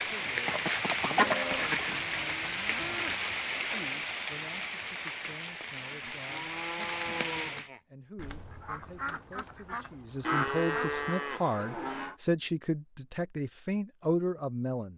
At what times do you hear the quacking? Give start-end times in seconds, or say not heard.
0.5-2.0, 8.2-11.2.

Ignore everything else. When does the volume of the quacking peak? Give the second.
1 s.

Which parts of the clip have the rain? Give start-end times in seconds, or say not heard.
0.0-7.7.